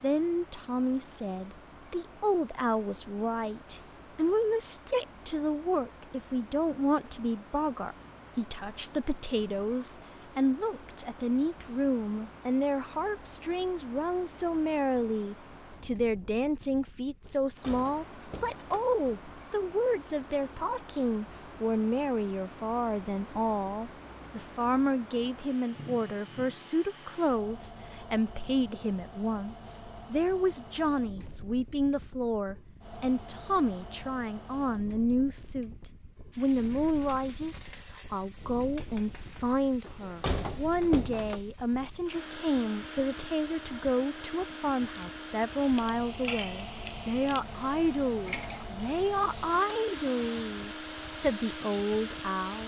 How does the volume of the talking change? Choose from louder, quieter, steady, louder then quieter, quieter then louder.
steady.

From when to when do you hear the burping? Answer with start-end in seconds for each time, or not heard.
not heard.